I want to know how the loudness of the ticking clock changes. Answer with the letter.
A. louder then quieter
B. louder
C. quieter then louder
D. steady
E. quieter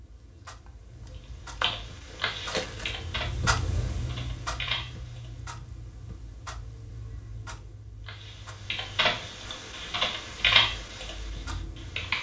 A.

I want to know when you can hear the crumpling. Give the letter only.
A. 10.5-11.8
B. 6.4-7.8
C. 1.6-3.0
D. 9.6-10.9
C.